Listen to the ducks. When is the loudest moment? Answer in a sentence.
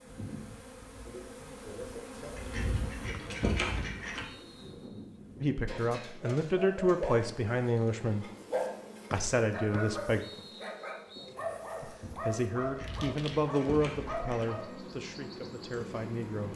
The loudest moment of the ducks is at 4 seconds.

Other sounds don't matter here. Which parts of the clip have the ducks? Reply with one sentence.
The ducks can be heard from 2.4 to 4.2 s and from 12.6 to 14.4 s.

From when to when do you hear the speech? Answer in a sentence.
The speech can be heard from 5.4 to 8.2 s, from 9.1 to 10.2 s and from 11.8 to 16.5 s.